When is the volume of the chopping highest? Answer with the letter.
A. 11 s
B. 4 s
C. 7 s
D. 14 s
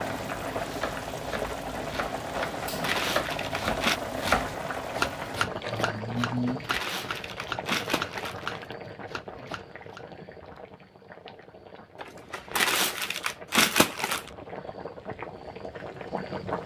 B.